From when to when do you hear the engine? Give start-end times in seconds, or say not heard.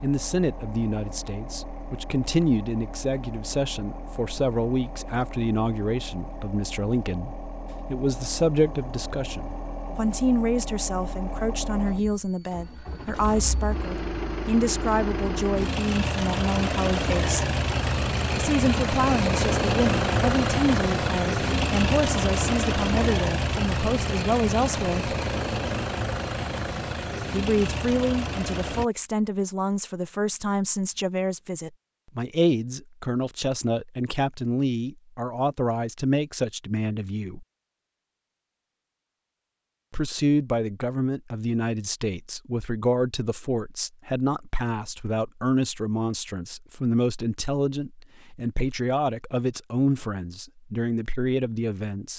0.0-28.9.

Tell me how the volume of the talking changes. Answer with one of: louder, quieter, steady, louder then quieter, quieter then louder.
steady.